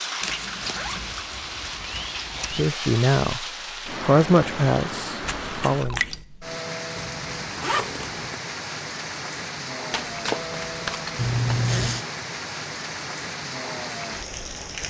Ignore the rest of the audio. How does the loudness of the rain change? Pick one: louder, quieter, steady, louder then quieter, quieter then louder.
steady.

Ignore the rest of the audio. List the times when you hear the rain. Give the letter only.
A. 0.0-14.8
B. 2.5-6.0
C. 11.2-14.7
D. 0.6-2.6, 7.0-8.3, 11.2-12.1
A.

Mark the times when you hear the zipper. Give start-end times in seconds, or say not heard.
0.6-2.6, 7.0-8.3, 11.2-12.1.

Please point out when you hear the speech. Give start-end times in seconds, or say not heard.
2.5-6.0.